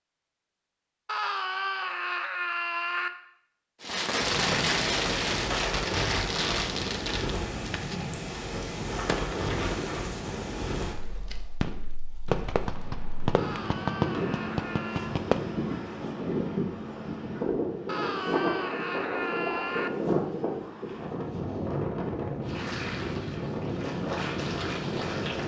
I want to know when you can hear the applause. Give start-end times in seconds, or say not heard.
22.4-25.4.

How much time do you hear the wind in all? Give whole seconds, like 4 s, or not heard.
21 s.